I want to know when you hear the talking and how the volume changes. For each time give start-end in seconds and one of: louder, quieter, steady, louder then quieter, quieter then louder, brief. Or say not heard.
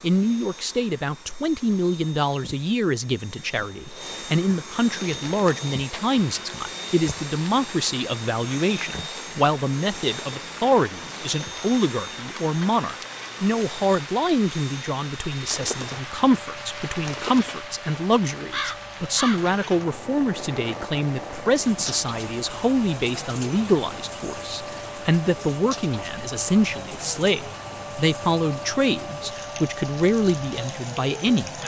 0.0-31.6 steady.